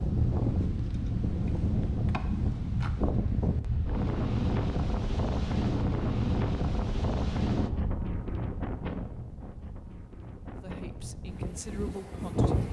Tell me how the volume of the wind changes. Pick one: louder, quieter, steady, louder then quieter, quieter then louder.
quieter.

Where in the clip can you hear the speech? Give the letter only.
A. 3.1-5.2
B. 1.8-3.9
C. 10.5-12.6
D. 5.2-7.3
C.